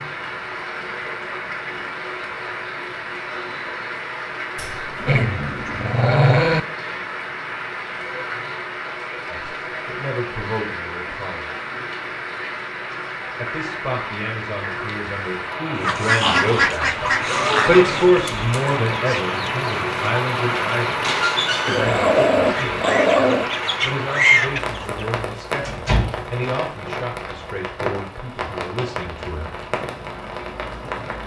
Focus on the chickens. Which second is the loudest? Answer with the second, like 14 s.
24 s.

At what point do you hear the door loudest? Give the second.
26 s.